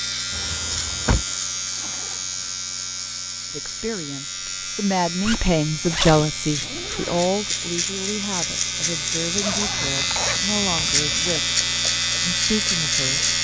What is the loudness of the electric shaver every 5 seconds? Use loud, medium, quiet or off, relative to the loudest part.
medium, medium, loud.